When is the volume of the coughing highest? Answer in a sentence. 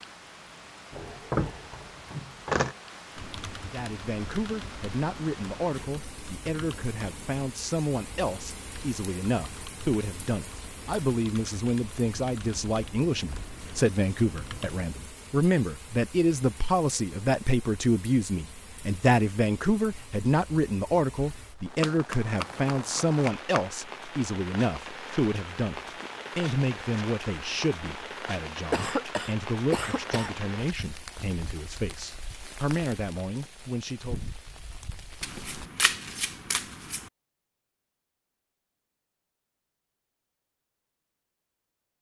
The loudest moment of the coughing is at 29 seconds.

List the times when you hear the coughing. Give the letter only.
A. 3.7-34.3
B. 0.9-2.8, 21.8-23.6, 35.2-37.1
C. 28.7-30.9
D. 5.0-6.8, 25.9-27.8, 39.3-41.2
C.